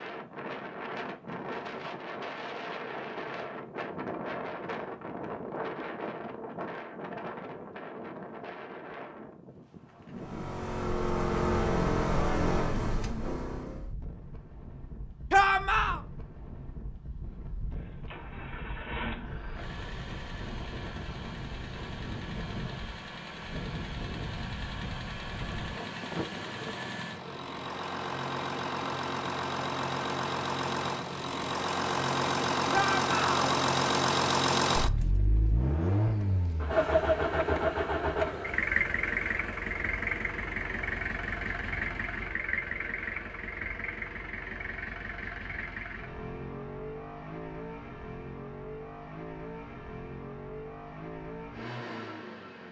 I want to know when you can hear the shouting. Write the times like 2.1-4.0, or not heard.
15.3-16.0, 32.7-33.4.